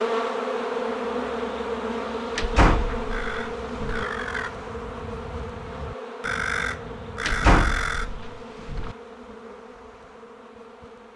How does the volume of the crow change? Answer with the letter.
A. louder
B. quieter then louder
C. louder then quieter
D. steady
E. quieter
B.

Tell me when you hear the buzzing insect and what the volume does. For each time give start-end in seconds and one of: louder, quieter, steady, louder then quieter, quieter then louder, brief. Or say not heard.
0.0-11.1 quieter.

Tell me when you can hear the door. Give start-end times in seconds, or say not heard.
2.4-4.0, 7.2-8.9.